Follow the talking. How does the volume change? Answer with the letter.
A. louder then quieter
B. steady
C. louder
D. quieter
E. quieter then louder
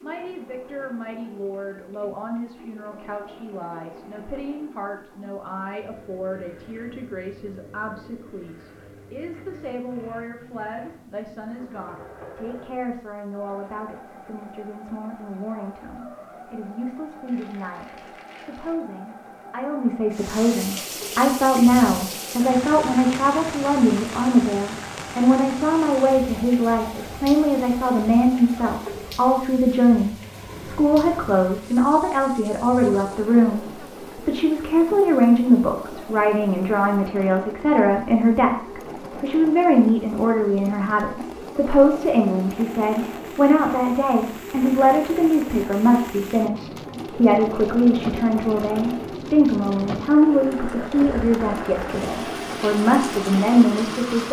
C.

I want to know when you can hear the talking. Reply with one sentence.
The talking can be heard from 0.0 to 54.2 s.